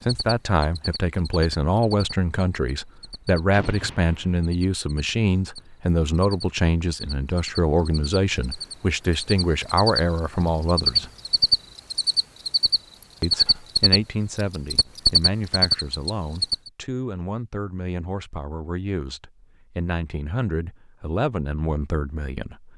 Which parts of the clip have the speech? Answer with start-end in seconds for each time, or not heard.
0.0-11.1, 13.2-22.7.